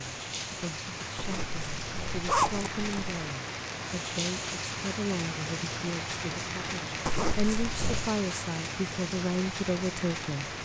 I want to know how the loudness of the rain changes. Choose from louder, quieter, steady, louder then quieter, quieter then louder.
steady.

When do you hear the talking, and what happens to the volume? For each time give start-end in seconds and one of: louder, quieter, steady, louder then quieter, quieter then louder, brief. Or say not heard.
0.0-10.6 louder.